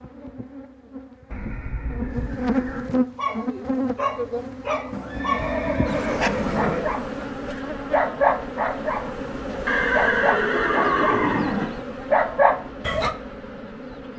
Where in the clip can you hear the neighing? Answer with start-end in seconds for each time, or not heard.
1.3-2.9, 4.9-6.8, 9.7-11.7.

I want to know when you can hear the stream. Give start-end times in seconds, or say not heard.
not heard.